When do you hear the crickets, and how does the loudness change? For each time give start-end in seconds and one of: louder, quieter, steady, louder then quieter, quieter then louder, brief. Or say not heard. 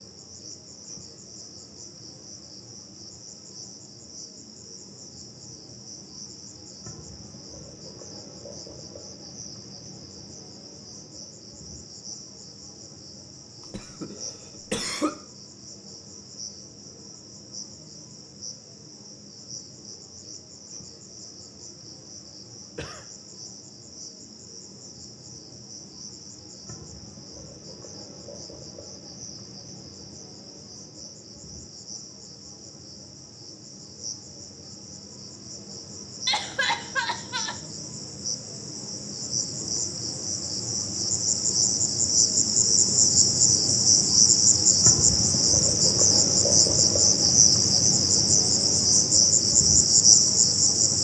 0.0-50.9 louder.